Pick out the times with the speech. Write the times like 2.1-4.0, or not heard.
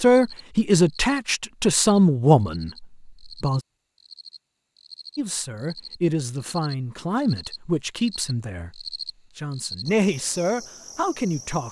0.0-3.6, 5.2-11.6.